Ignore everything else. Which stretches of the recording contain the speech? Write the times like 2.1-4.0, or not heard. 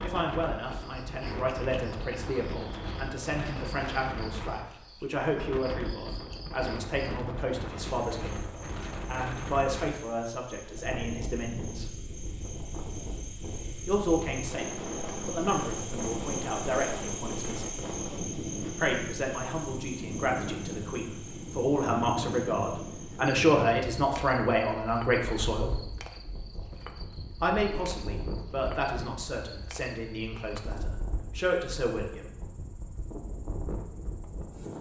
0.0-11.8, 13.8-17.8, 18.8-25.8, 27.4-32.3.